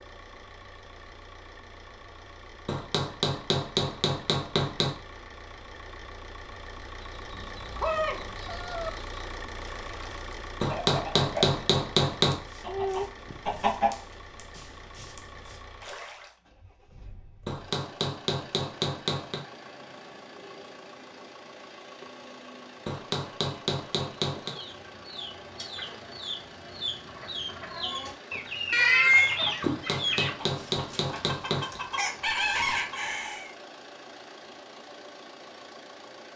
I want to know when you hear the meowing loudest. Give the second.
29 s.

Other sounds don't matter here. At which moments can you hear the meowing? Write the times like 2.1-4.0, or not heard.
7.3-8.9, 12.6-14.2, 28.7-29.4.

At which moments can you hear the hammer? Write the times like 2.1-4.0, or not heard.
2.6-5.0, 10.6-12.4, 17.4-19.4, 22.9-24.5, 29.6-31.8.